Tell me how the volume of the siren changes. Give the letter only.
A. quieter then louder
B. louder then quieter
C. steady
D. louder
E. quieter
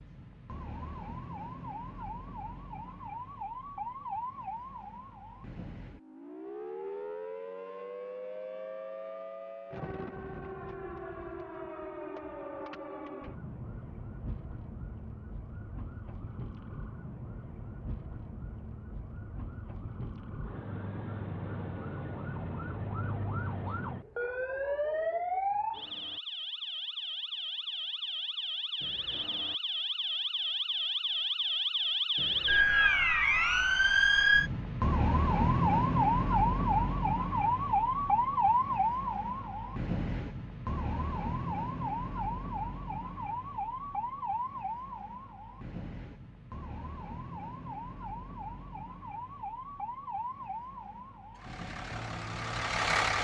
B.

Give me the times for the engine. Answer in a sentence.
You can hear the engine from 51.3 to 53.2 s.